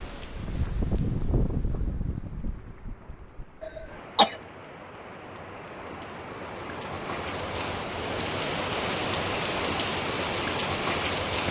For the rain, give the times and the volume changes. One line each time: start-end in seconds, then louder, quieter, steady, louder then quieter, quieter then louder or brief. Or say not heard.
0.0-11.4 quieter then louder.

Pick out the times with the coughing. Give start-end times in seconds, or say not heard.
3.6-4.3.